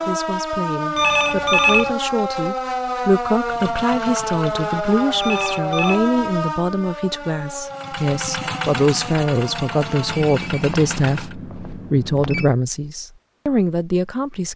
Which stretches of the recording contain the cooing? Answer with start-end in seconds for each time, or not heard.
not heard.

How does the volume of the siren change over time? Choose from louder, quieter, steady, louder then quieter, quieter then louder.
quieter.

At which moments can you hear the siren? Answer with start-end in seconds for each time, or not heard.
0.0-10.2.